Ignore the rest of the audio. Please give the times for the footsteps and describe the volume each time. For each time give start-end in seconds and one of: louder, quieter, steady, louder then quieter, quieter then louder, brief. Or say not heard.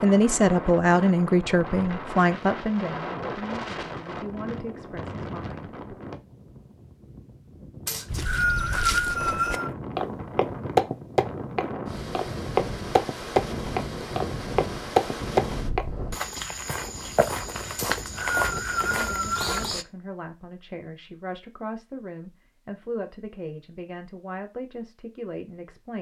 8.1-19.9 louder then quieter.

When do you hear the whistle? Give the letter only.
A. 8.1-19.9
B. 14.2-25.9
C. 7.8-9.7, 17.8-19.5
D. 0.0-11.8
C.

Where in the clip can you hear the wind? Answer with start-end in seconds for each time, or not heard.
0.0-16.1.